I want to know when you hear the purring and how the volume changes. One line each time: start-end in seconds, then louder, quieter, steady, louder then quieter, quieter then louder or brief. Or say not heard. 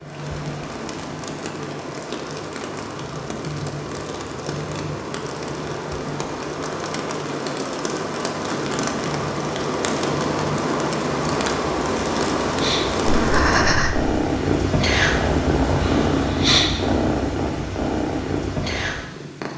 0.0-19.5 louder.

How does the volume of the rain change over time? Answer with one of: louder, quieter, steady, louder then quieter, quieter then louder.
louder.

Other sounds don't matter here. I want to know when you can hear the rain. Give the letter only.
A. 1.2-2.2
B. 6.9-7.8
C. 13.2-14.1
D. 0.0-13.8
D.